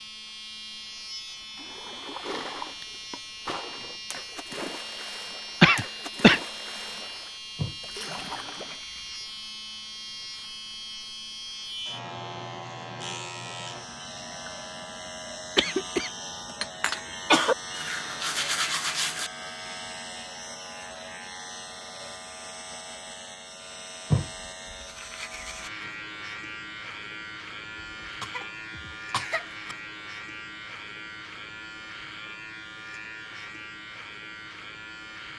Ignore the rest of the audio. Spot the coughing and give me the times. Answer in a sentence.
The coughing can be heard from 5.6 to 6.4 s, from 15.6 to 17.6 s and from 27.8 to 29.5 s.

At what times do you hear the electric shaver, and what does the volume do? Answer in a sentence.
The electric shaver can be heard from 0.0 to 35.3 s, at a steady volume.